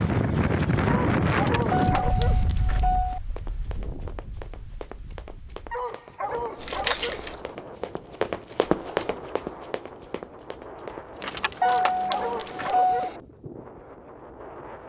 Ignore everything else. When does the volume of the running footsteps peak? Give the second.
9 s.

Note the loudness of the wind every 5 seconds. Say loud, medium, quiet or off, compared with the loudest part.
loud, quiet, quiet.